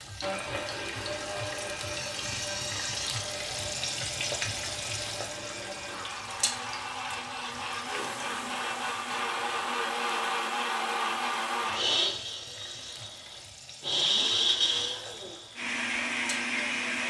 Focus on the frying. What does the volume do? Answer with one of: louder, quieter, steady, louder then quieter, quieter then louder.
quieter.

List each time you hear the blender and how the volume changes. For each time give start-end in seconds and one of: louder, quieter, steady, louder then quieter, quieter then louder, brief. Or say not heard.
0.1-17.0 louder.